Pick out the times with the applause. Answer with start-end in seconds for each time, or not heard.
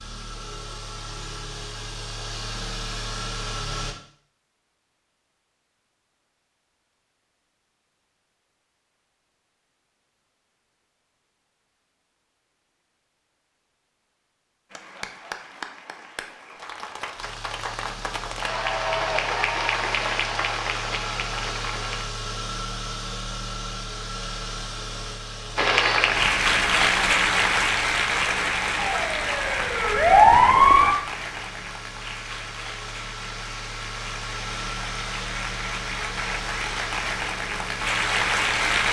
14.7-22.1, 25.6-38.8.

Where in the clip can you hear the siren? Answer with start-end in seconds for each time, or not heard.
28.8-30.9.